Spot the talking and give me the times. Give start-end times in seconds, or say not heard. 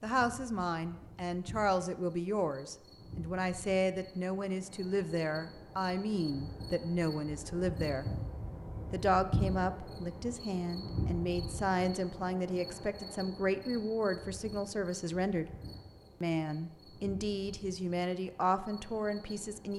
0.0-8.1, 8.9-15.4, 16.2-19.7.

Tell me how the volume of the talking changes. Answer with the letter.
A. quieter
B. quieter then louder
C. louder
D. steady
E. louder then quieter
D.